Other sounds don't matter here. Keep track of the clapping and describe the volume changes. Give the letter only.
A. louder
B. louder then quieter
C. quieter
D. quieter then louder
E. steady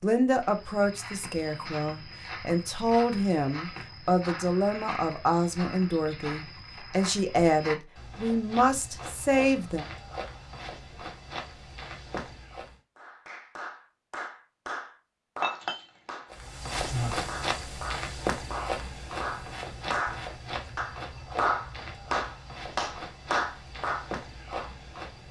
A.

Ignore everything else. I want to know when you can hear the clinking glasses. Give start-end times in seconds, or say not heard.
15.4-17.1.